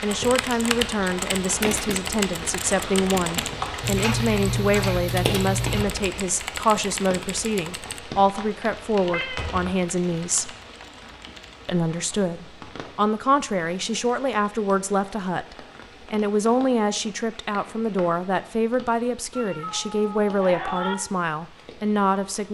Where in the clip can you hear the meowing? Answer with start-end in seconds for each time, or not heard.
3.8-5.8, 9.1-9.6, 19.3-20.9.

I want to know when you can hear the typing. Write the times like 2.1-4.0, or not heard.
0.1-11.7.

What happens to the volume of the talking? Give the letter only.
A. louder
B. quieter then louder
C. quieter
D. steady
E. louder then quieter
D.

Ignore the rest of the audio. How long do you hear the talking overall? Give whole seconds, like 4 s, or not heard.
21 s.